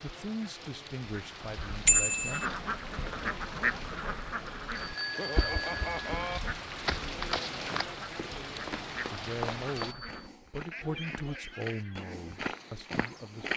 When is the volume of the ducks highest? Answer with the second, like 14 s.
4 s.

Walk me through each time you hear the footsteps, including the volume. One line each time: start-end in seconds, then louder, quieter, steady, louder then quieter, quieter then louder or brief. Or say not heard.
6.8-13.5 quieter then louder.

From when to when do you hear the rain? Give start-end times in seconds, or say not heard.
0.0-9.9.